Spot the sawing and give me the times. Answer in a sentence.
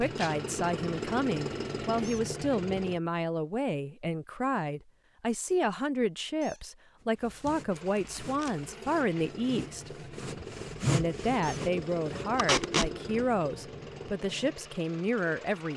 The sawing can be heard from 7.0 to 12.4 s.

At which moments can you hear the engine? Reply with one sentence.
The engine can be heard from 0.0 to 3.0 s and from 7.7 to 15.7 s.